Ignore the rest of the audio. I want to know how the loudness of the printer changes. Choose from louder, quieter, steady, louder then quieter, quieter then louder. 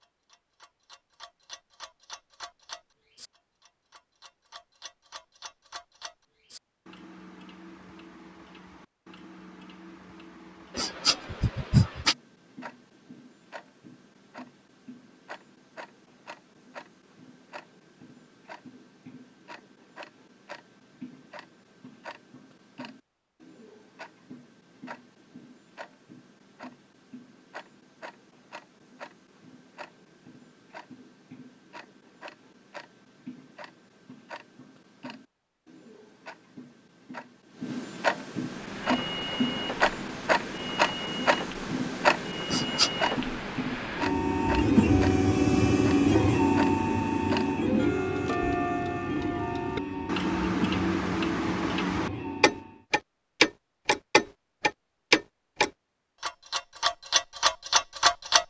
louder then quieter.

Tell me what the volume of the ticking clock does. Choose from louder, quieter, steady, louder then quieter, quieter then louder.
louder.